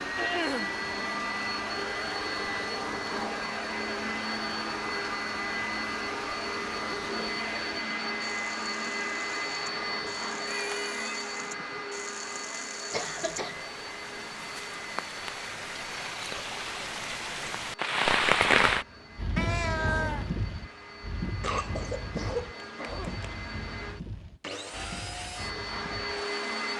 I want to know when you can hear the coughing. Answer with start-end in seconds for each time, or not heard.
0.1-0.8, 12.9-13.6, 21.4-23.4.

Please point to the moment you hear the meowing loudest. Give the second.
20 s.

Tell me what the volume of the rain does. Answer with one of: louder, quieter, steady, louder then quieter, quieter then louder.
louder then quieter.